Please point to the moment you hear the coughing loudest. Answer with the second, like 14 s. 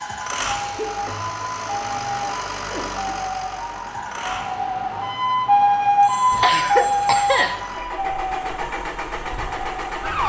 7 s.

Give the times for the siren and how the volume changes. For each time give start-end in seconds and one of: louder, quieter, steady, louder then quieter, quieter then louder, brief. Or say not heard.
0.0-10.2 louder then quieter.